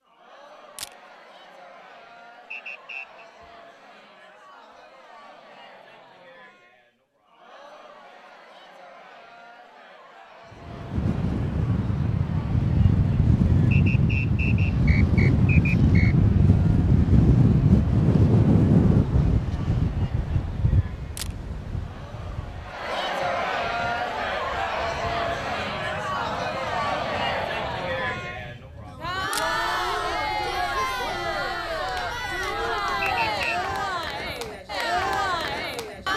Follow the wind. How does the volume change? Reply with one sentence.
The loudness of the wind goes down.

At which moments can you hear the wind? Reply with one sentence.
You can hear the wind from 10.7 to 36.1 s.